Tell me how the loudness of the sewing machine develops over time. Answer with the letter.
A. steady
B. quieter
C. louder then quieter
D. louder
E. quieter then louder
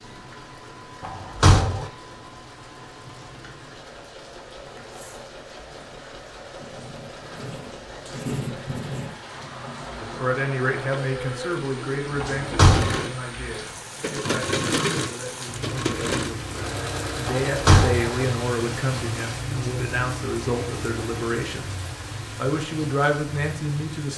D.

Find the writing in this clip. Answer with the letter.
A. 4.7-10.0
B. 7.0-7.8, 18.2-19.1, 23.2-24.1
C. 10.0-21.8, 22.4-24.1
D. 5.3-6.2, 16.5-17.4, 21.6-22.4
A.